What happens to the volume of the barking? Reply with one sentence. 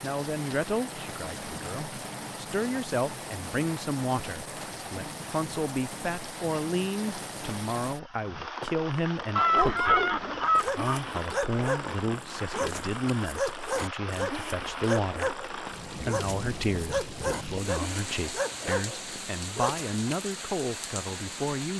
The loudness of the barking stays about the same.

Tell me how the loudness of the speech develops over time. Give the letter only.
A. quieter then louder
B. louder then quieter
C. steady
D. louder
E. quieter
C.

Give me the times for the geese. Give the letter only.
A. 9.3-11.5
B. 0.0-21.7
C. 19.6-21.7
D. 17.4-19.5
A.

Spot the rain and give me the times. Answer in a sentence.
The rain can be heard from 0.0 to 21.7 s.